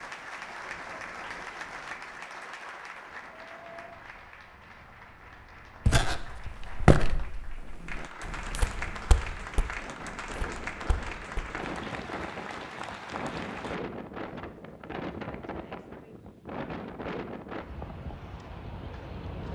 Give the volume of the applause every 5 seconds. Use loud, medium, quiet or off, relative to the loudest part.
loud, loud, loud, off.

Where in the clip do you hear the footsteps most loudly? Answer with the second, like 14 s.
7 s.